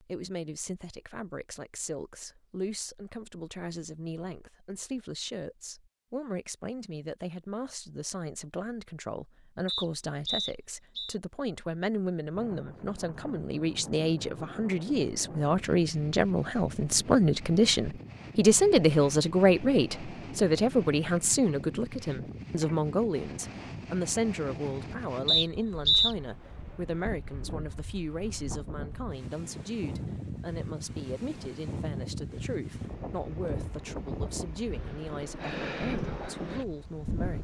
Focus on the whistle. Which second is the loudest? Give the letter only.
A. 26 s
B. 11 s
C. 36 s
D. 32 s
A.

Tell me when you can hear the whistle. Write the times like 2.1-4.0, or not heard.
9.7-11.2, 25.2-26.1.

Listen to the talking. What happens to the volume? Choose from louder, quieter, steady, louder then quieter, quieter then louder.
louder then quieter.